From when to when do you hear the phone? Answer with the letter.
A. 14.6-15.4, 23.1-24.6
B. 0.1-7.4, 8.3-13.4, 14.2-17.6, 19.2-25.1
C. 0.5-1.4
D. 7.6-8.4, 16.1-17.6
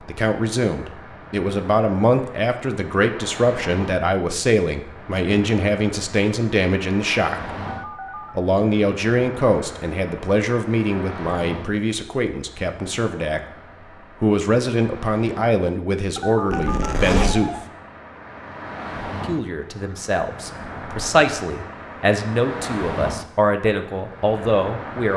D.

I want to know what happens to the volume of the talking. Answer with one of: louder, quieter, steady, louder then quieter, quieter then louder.
steady.